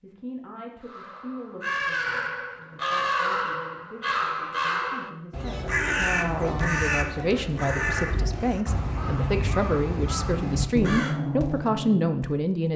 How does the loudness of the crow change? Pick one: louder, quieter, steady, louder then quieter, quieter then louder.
steady.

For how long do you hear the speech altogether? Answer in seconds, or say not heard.
13 s.